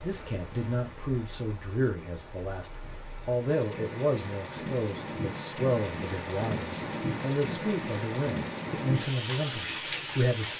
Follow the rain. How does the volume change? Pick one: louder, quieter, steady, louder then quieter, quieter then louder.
louder.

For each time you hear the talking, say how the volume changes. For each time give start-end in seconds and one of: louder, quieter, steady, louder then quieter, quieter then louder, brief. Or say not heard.
0.0-10.5 steady.